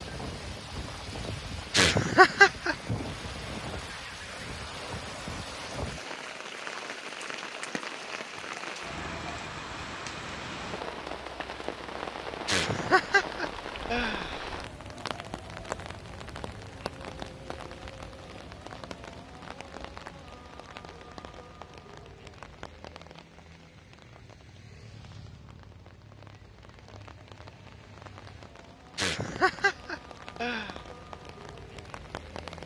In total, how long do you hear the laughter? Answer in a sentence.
The laughter can be heard for 5 seconds in total.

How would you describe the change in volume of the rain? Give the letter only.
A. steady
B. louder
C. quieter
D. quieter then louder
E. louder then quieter
C.